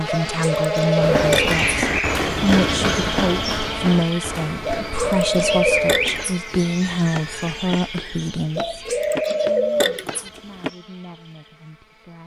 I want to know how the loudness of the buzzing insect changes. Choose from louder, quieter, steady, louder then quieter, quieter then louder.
quieter.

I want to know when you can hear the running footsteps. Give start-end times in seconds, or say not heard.
1.0-10.7.